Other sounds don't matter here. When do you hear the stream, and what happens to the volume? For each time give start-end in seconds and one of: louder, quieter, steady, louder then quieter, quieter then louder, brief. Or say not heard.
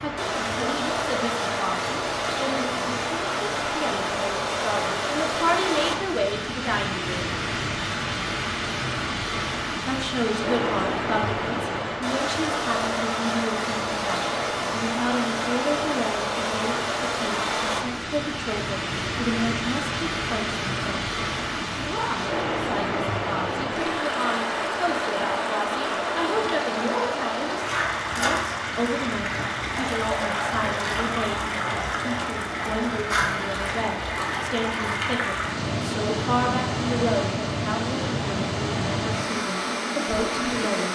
0.0-40.9 steady.